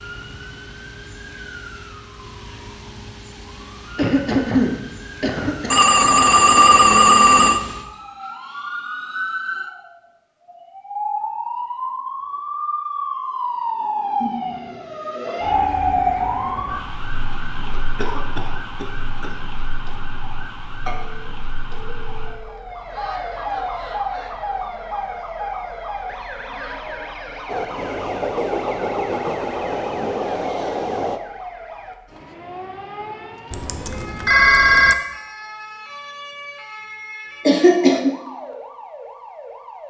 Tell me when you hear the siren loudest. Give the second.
16 s.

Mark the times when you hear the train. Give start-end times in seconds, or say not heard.
27.4-31.2.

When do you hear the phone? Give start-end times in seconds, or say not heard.
5.7-7.6, 20.9-22.6, 33.5-35.0.